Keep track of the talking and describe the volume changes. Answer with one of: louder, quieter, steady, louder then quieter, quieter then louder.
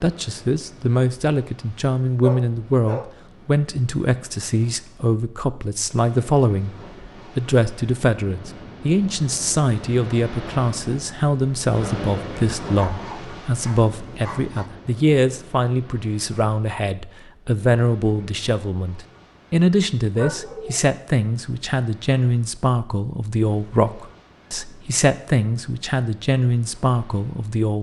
steady.